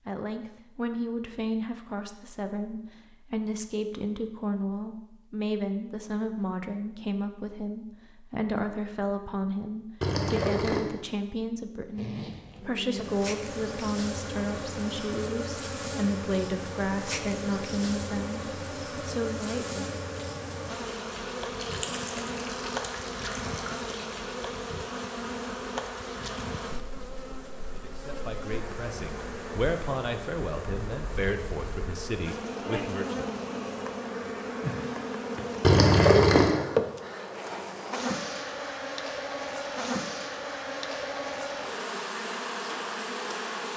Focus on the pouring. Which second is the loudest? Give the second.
36 s.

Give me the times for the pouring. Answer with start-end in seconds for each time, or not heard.
10.0-10.8, 21.6-24.1, 35.6-36.6.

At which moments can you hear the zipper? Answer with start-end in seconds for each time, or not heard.
11.9-12.7.